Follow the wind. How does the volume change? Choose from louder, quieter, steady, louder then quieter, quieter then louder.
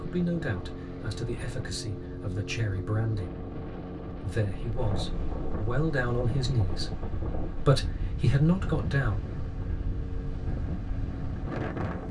steady.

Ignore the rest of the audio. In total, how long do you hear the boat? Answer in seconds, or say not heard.
12 s.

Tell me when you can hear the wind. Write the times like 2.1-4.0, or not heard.
4.6-12.0.